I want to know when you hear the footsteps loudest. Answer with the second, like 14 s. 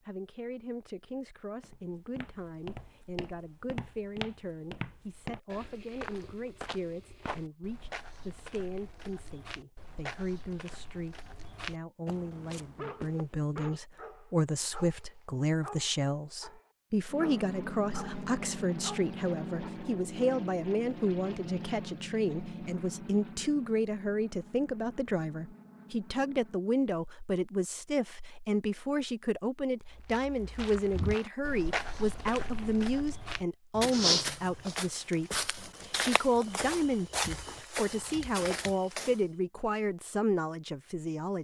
34 s.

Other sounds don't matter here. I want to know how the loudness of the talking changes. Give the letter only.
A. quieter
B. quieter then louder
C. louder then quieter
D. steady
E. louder
E.